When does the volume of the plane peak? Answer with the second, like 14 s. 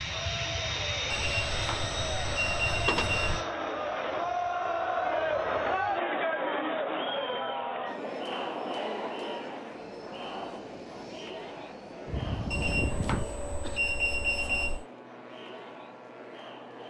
1 s.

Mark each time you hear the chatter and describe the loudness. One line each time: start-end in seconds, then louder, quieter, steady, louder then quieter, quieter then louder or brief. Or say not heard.
0.0-16.8 louder then quieter.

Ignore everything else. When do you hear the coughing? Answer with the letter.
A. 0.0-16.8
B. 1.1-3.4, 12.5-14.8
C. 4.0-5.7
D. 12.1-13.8
D.